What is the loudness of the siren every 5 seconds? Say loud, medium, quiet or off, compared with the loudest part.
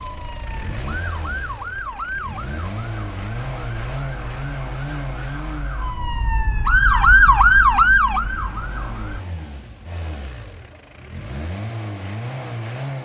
quiet, loud, off.